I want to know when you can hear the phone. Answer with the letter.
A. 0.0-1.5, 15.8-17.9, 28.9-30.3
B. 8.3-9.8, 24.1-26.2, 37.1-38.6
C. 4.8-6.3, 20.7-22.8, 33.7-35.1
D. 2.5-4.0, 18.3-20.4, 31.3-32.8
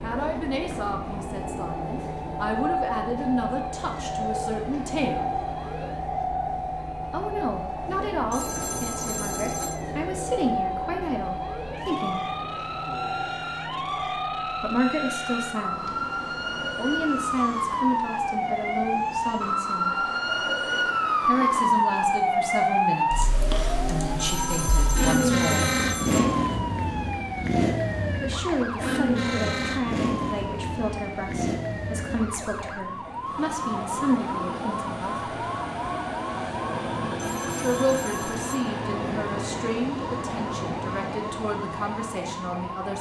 B.